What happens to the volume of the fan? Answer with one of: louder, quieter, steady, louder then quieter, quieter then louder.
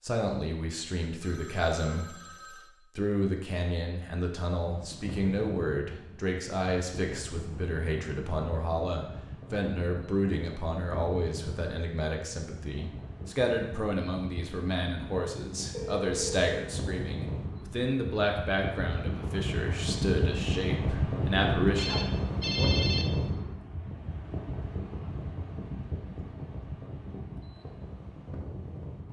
louder then quieter.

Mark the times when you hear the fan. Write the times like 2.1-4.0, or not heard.
4.5-29.0.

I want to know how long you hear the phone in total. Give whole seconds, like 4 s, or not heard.
4 s.